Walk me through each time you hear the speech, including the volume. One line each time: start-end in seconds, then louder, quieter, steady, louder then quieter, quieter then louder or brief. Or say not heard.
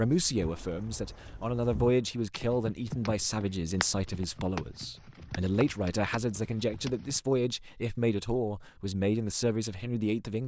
0.0-10.4 steady.